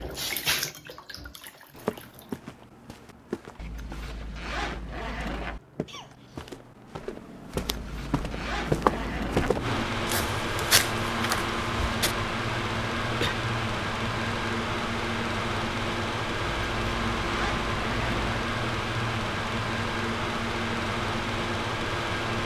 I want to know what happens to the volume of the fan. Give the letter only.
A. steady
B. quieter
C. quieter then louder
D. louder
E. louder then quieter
A.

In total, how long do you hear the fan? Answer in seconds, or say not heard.
13 s.